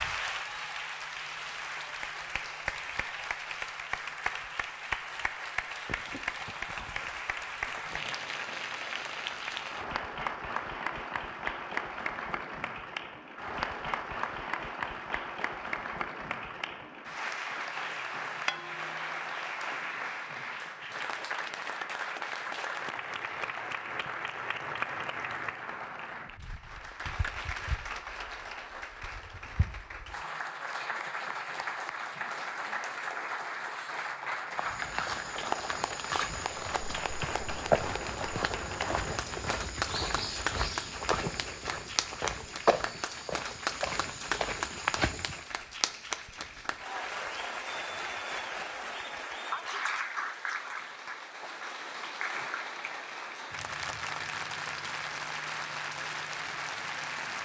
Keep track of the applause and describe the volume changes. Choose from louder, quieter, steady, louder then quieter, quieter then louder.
steady.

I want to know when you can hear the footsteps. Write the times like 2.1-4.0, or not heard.
34.5-45.5.